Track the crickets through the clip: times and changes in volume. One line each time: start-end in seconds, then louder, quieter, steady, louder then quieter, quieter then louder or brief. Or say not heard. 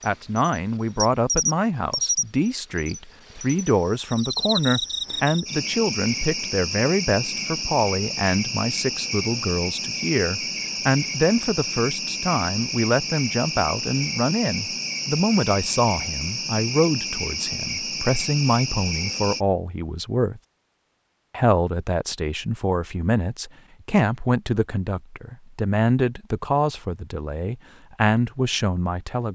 0.0-19.4 steady.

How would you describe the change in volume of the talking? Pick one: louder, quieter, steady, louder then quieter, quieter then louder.
steady.